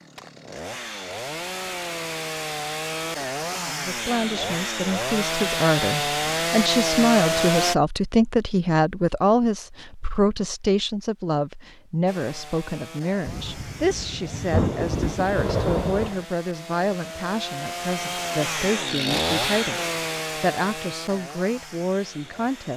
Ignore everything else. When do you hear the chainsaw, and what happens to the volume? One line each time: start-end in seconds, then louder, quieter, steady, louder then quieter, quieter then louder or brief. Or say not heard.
0.0-7.8 louder
12.1-22.7 louder then quieter.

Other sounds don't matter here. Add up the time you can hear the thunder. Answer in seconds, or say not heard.
3 s.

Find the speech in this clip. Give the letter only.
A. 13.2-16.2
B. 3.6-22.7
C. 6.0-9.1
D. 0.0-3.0
B.